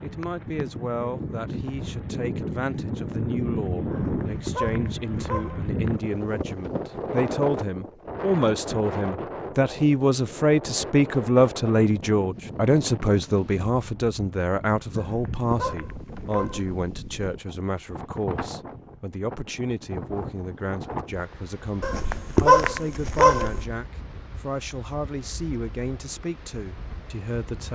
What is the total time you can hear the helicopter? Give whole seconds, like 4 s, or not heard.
not heard.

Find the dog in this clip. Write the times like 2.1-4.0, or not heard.
3.9-5.7, 14.9-16.8, 21.8-23.6.